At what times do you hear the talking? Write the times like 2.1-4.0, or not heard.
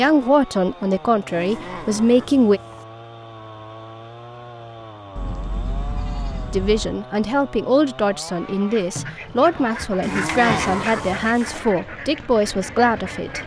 0.0-2.6, 6.5-13.4.